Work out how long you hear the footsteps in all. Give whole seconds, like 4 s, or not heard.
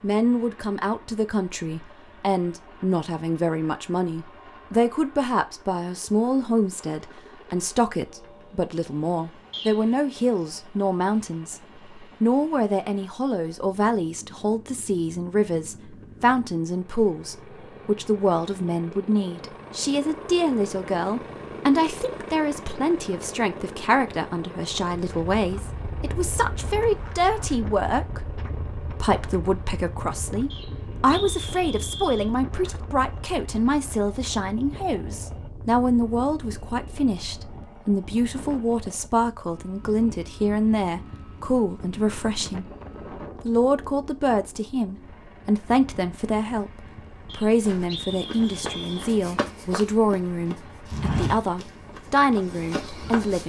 6 s.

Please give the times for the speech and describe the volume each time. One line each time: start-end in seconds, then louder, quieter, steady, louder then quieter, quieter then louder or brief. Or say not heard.
0.0-42.7 steady
43.5-53.4 steady.